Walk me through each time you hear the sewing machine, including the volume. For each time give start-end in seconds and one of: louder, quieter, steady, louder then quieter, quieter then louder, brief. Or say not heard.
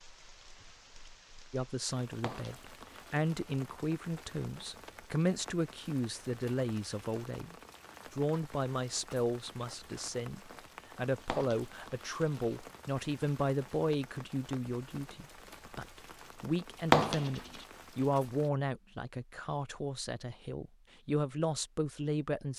not heard.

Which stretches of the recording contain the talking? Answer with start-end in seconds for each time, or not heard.
1.5-22.5.